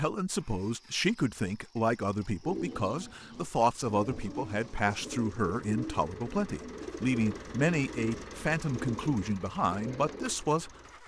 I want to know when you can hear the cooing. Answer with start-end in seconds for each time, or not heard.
2.4-10.3.